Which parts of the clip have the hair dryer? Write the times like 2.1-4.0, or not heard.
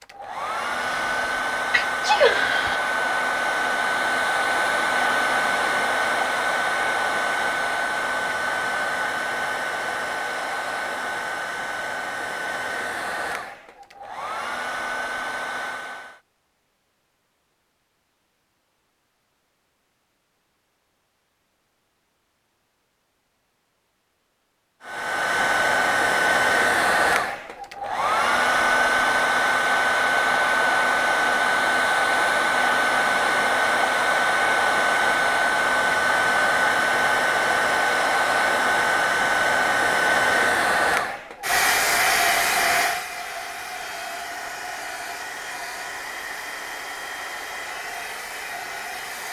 0.0-16.2, 24.8-49.2.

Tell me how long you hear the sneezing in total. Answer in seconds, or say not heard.
2 s.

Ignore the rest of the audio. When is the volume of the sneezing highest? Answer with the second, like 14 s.
2 s.